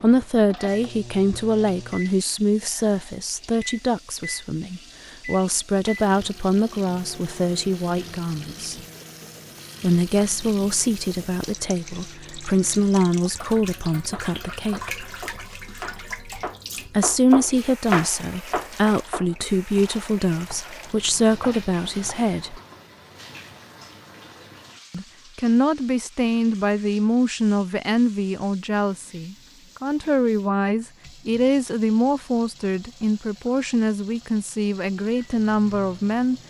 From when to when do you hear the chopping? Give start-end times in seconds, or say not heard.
14.1-22.2.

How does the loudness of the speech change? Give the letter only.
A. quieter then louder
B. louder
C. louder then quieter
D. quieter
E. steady
E.